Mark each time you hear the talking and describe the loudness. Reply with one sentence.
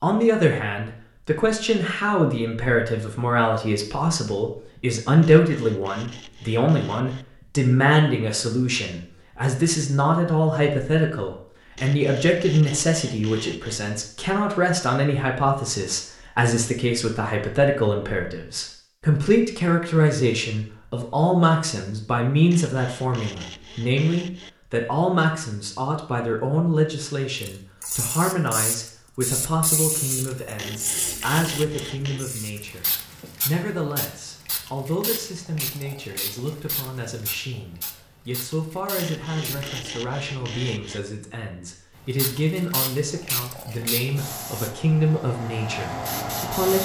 You can hear the talking from 0.0 to 46.7 s, getting quieter.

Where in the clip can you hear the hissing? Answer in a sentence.
You can hear the hissing from 27.4 to 39.8 s and from 42.0 to 46.7 s.